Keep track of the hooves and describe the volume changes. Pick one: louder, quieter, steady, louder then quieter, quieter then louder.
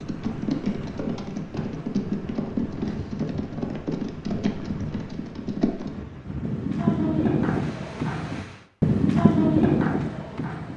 louder.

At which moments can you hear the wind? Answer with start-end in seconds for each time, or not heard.
0.0-8.7.